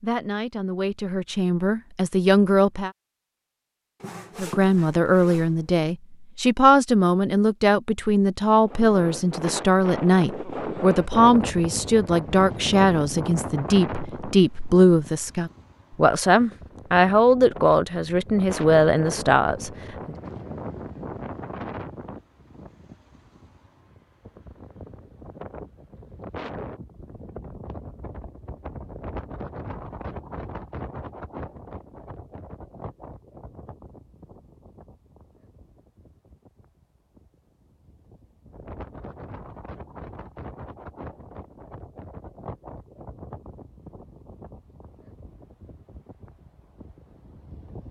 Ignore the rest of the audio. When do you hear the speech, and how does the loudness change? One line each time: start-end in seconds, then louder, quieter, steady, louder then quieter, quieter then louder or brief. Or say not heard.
0.0-2.9 brief
4.3-20.1 steady.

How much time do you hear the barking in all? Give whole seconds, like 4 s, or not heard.
not heard.